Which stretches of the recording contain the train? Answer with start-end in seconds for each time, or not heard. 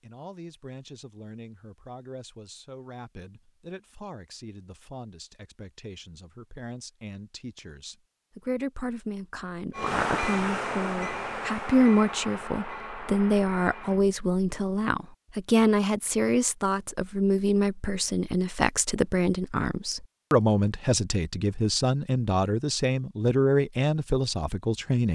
9.7-14.1.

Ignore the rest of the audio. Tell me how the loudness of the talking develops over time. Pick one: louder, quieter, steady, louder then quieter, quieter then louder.
louder.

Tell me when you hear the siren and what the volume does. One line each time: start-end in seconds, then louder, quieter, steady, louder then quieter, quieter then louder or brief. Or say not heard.
not heard.